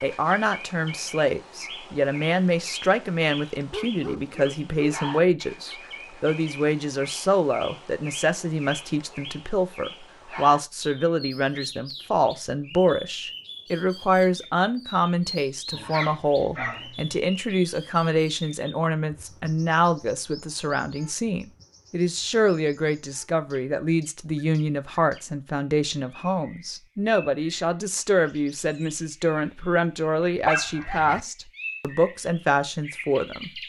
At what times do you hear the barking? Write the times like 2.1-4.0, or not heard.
3.7-5.0, 15.7-17.2, 30.4-31.2.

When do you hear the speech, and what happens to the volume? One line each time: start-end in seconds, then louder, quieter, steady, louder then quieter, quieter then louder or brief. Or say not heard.
0.0-33.5 steady.